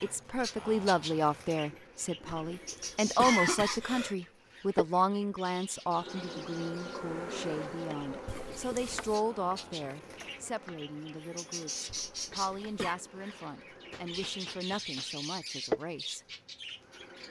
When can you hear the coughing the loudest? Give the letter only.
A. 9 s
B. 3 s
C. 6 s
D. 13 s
B.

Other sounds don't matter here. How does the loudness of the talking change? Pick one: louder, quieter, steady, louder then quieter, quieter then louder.
quieter.